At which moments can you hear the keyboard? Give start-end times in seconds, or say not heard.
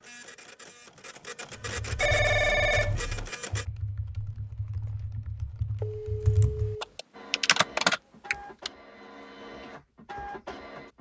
1.6-8.7.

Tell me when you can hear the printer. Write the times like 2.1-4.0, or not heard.
0.0-3.6, 7.1-10.9.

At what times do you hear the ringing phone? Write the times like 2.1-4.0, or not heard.
1.9-3.3, 5.8-7.0.